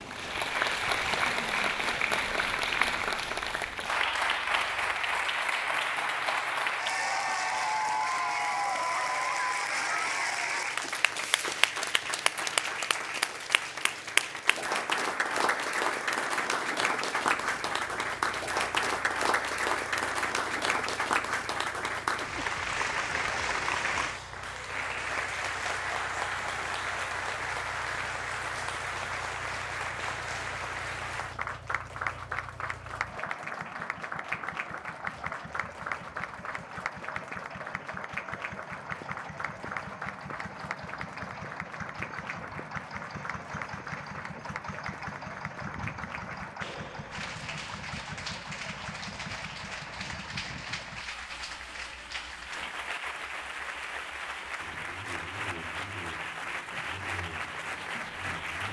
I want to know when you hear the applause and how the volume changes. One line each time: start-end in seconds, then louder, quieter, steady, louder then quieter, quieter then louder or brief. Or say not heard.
0.0-58.6 quieter.